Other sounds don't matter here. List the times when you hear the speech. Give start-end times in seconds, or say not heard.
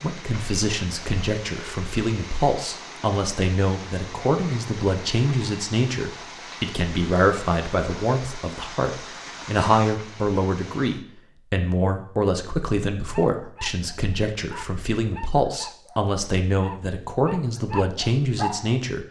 0.0-19.0.